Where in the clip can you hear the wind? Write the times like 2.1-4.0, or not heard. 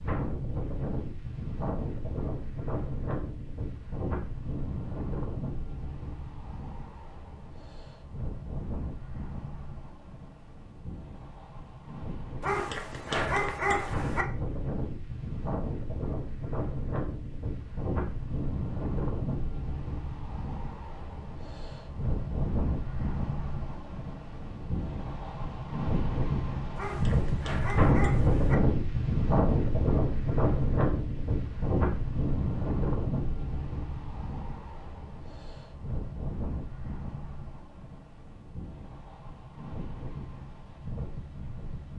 0.0-41.9.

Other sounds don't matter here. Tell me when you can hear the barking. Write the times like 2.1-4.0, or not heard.
12.4-14.2, 26.8-28.6.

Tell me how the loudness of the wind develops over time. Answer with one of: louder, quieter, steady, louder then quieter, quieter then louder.
louder then quieter.